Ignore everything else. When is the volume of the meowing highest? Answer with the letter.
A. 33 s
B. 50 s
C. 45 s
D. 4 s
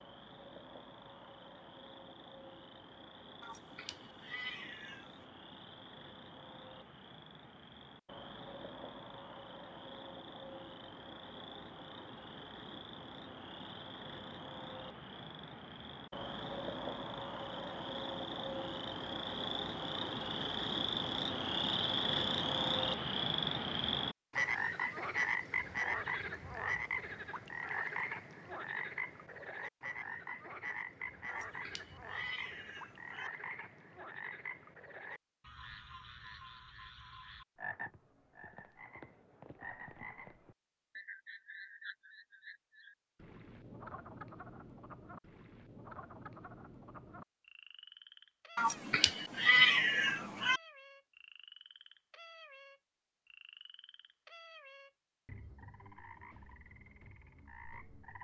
B.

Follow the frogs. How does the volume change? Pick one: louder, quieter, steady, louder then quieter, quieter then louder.
louder then quieter.